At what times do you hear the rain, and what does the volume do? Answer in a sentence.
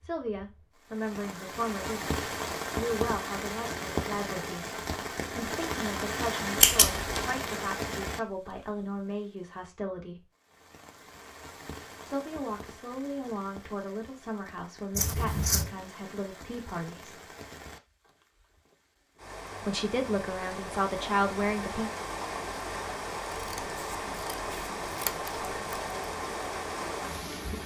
You can hear the rain from 0.0 to 27.6 s, getting quieter then louder.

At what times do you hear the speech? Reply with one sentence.
You can hear the speech from 0.0 to 2.1 s, from 2.8 to 10.2 s, from 12.1 to 17.1 s and from 19.6 to 21.9 s.